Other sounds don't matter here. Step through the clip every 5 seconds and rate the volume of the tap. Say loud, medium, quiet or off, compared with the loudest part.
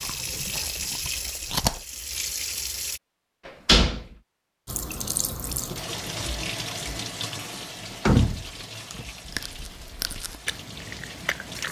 loud, loud, medium.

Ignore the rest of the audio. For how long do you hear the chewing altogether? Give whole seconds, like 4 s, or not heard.
4 s.